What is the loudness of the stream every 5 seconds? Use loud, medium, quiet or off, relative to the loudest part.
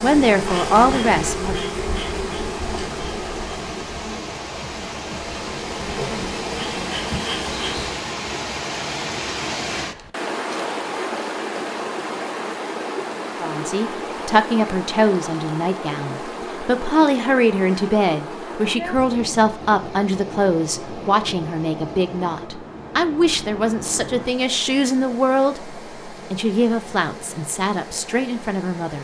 medium, loud, loud, loud, medium, medium.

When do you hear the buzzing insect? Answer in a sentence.
You can hear the buzzing insect from 0.0 to 8.0 s.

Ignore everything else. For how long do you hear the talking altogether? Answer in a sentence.
You can hear the talking for 17 seconds altogether.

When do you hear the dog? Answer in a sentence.
The dog can't be heard in this clip.